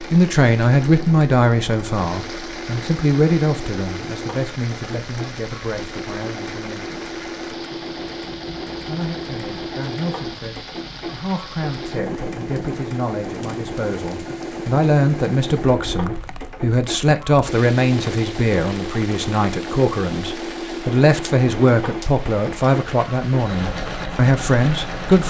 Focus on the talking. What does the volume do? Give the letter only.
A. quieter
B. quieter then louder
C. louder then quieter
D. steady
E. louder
B.